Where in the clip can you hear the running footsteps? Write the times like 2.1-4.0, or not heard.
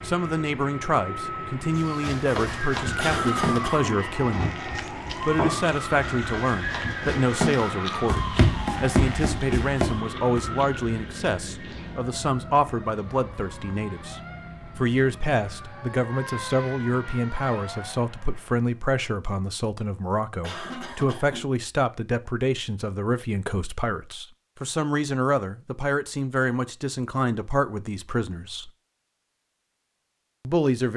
1.7-10.4.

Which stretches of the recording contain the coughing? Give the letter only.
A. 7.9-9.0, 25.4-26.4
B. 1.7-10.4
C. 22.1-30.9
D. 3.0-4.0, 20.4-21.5
D.